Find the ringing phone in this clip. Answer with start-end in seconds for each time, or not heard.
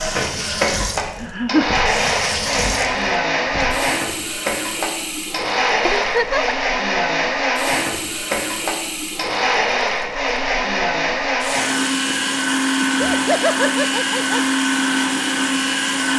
not heard.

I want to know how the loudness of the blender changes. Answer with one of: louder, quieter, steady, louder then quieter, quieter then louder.
steady.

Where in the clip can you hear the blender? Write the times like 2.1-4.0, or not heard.
0.0-16.1.